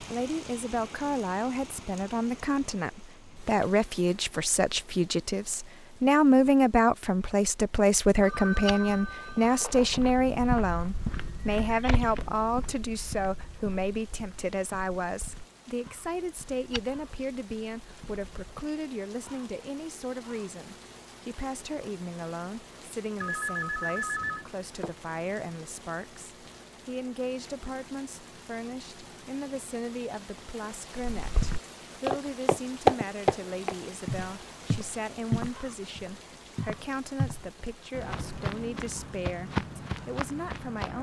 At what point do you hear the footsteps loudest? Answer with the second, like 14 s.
33 s.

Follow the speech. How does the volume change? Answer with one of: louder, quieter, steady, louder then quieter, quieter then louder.
quieter.